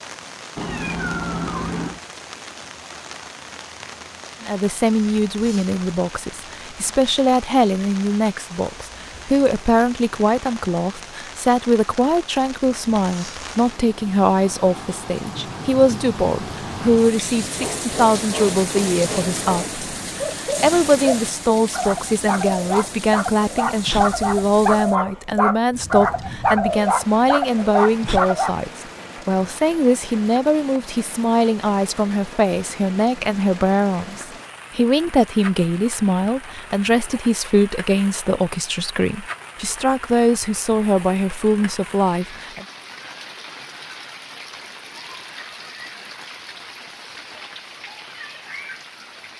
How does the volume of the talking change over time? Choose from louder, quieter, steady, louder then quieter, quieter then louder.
steady.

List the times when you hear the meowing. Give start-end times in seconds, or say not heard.
0.6-2.0.